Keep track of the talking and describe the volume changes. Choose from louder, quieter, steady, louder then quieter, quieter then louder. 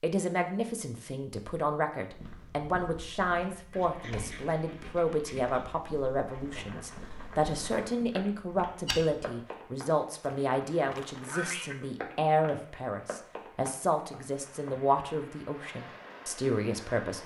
steady.